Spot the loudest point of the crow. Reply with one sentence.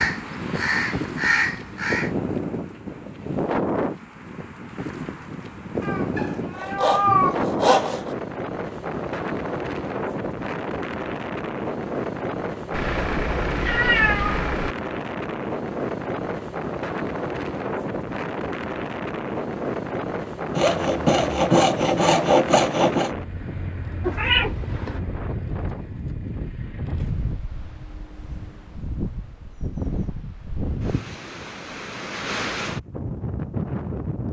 The volume of the crow peaks at 1 second.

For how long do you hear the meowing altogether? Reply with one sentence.
You can hear the meowing for 5 seconds altogether.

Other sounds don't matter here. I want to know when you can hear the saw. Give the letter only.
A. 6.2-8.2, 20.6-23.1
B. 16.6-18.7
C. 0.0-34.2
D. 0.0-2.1
A.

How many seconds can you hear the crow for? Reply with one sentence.
You can hear the crow for 2 seconds altogether.